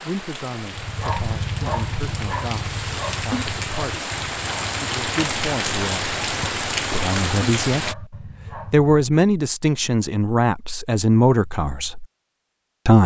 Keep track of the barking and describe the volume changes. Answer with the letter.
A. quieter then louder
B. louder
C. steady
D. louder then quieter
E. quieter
E.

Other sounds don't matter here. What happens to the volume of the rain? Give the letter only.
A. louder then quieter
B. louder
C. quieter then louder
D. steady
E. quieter
B.